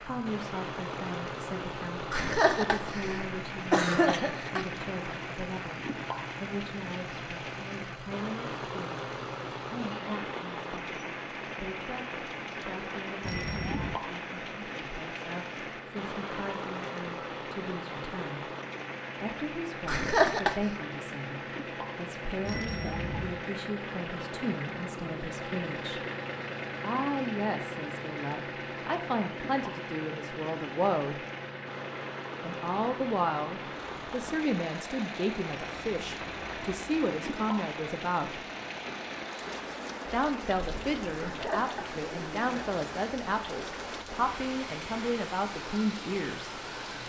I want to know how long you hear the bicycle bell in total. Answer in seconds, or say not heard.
3 s.